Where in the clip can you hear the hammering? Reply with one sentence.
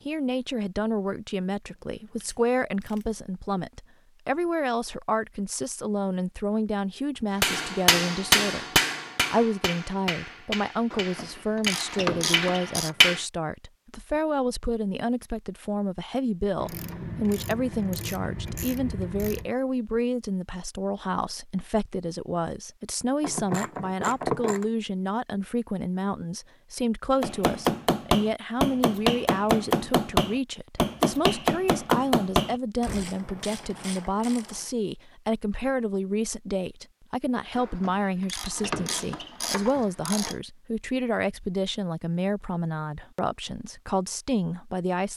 The hammering can be heard from 7.4 to 13.2 s and from 27.2 to 33.1 s.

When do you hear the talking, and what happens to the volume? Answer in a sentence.
The talking can be heard from 0.1 to 8.7 s, at a steady volume; and from 9.3 to 45.1 s, at a steady volume.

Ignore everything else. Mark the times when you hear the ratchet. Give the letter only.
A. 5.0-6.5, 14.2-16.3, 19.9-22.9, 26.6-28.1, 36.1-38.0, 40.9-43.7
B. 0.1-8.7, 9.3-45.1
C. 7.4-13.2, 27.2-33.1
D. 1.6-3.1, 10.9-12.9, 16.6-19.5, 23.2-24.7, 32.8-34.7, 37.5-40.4
D.